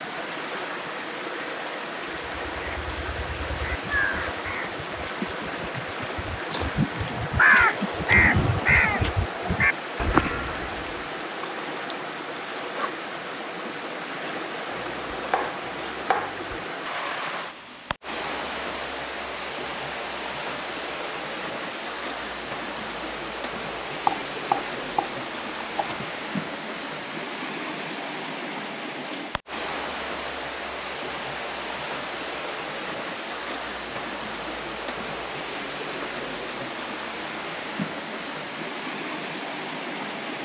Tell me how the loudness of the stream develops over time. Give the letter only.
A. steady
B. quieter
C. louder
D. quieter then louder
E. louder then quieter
A.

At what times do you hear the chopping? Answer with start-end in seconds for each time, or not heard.
14.7-16.6, 24.1-26.1.